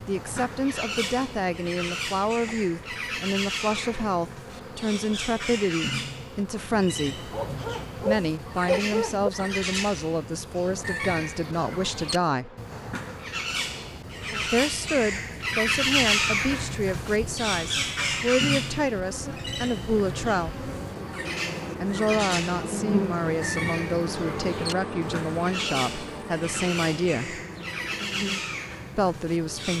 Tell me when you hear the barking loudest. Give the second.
9 s.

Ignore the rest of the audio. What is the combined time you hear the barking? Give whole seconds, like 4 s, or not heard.
2 s.